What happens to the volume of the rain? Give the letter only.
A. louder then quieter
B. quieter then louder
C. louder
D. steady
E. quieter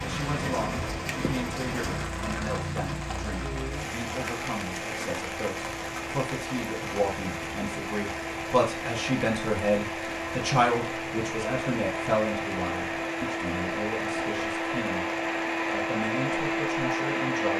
E.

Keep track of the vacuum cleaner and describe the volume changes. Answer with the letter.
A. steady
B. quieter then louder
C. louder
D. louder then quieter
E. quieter
C.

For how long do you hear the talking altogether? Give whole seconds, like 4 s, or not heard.
17 s.